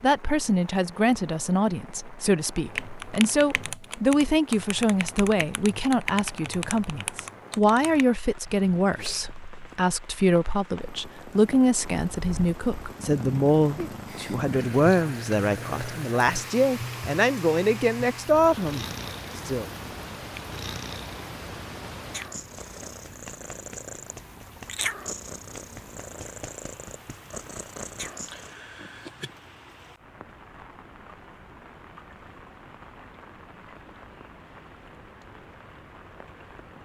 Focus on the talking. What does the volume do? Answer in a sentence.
The volume of the talking stays about the same.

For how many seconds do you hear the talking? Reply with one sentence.
You can hear the talking for 20 seconds altogether.